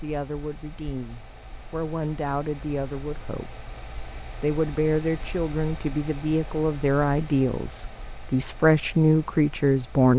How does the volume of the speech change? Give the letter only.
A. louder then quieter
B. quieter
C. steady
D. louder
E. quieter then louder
D.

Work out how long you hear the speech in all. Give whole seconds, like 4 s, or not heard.
9 s.